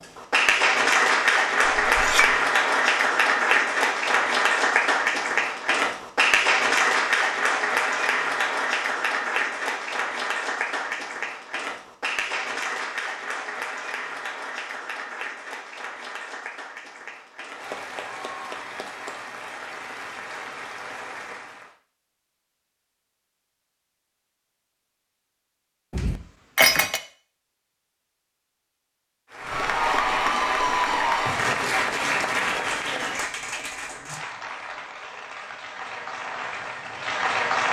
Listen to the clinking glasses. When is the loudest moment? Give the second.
27 s.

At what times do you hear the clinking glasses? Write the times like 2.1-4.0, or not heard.
1.6-2.4, 25.9-27.0.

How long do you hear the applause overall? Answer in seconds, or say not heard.
30 s.